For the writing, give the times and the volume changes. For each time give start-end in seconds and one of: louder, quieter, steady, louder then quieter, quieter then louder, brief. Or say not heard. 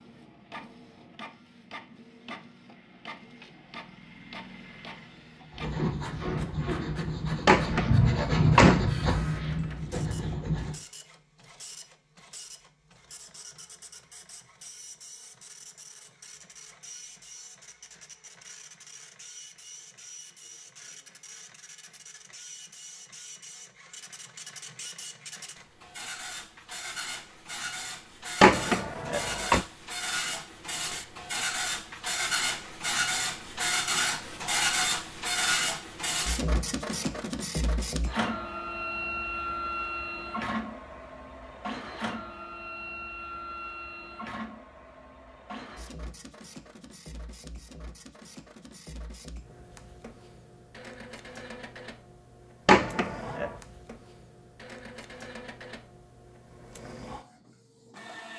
5.5-10.8 louder then quieter.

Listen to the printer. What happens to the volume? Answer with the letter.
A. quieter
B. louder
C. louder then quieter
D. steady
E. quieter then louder
C.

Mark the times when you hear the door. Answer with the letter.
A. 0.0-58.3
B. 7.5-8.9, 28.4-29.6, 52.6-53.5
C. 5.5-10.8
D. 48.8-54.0
B.